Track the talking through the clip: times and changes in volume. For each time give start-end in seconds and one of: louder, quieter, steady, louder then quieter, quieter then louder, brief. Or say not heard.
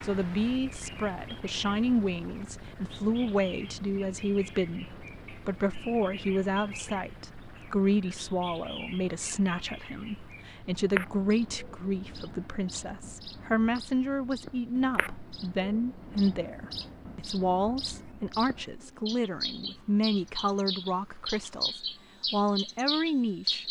0.0-23.6 steady.